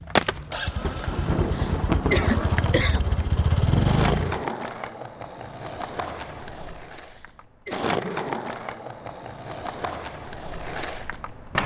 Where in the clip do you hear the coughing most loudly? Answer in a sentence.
The loudest moment of the coughing is at 2 seconds.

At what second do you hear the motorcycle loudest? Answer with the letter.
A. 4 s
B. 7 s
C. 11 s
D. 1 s
A.